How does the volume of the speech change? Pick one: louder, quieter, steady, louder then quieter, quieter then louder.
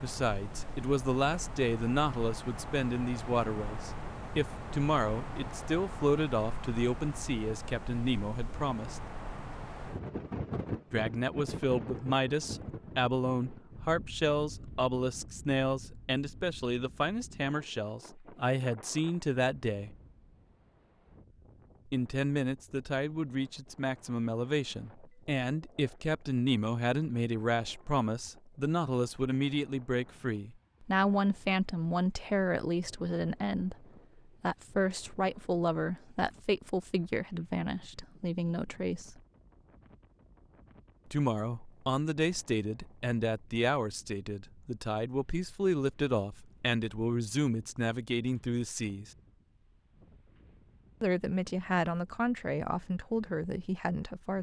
steady.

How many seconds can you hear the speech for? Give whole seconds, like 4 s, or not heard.
47 s.